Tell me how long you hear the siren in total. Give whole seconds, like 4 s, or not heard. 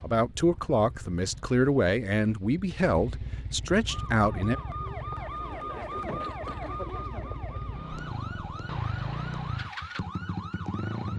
7 s.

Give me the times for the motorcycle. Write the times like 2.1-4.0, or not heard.
0.0-11.1.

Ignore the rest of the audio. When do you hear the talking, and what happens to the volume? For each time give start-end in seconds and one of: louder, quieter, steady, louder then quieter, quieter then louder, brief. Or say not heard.
0.0-4.5 steady.